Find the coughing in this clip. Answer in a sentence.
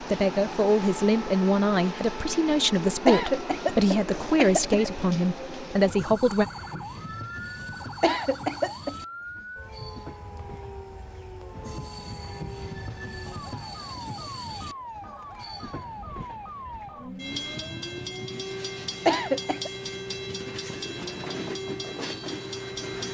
You can hear the coughing from 3.0 to 4.9 s, from 8.0 to 8.9 s and from 19.1 to 19.7 s.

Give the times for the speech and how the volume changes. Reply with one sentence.
You can hear the speech from 0.0 to 6.5 s, at a steady volume.